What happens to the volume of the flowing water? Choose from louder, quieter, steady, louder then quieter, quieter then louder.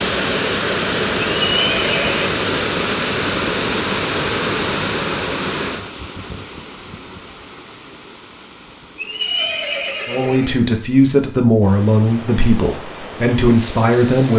quieter then louder.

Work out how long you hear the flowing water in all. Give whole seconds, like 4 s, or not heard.
14 s.